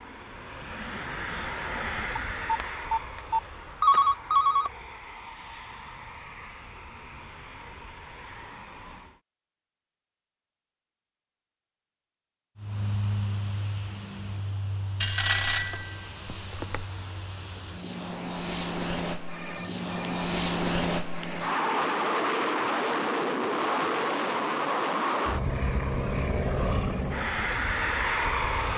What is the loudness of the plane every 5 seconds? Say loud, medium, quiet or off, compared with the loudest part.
medium, quiet, medium, medium, loud, loud.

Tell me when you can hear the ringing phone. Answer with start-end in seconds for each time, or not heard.
2.1-4.7, 15.0-16.9, 19.3-20.2.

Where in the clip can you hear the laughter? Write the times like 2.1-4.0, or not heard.
not heard.